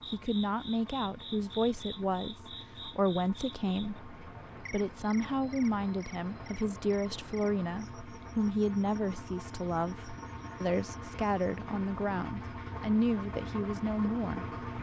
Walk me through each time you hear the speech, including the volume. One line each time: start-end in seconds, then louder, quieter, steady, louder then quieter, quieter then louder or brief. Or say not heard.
0.1-14.4 steady.